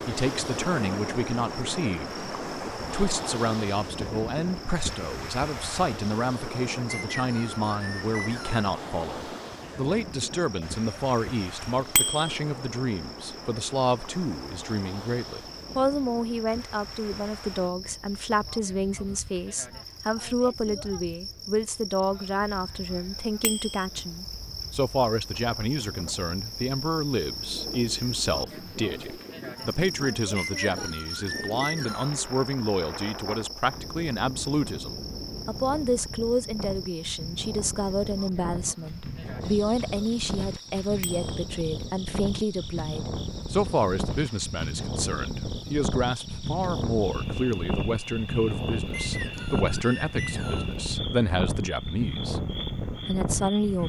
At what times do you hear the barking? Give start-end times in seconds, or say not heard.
not heard.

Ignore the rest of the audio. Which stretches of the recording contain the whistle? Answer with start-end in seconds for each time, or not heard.
6.9-8.7, 30.4-32.1, 48.9-50.8.